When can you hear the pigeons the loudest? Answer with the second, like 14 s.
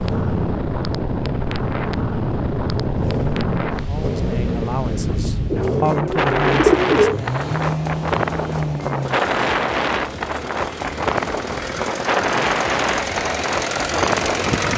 7 s.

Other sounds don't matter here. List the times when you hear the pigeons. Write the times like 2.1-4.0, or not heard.
5.5-7.2.